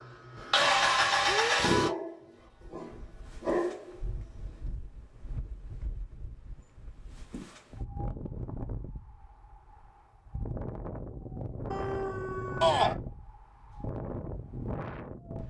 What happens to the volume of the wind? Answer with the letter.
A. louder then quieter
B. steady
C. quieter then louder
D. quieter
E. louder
E.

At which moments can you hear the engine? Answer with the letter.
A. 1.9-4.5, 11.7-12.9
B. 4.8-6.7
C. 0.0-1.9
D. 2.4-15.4
C.